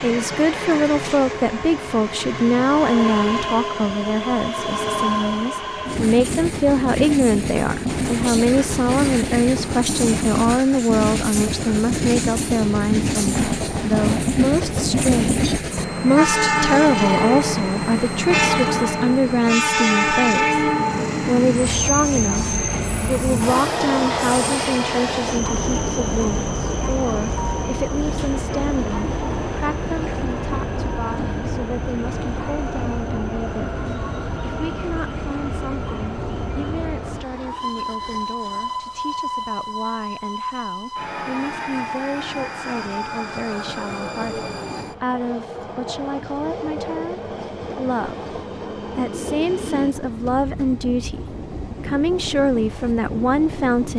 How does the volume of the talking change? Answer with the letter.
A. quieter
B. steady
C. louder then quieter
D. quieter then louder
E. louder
D.